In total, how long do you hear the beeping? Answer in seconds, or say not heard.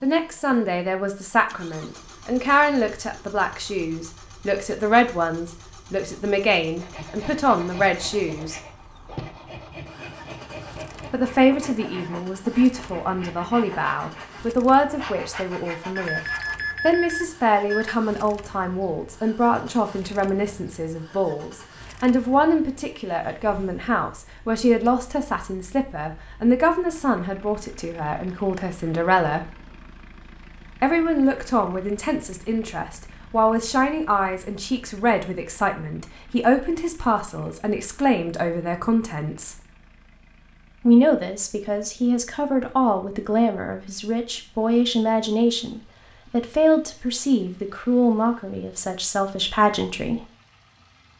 2 s.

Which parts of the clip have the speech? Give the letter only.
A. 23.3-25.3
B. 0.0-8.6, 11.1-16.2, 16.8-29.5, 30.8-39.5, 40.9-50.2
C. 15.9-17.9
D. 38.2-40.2
B.